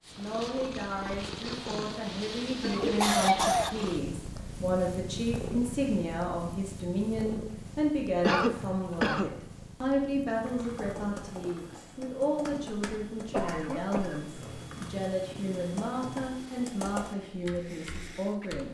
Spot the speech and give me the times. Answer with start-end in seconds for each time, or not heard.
0.1-18.6.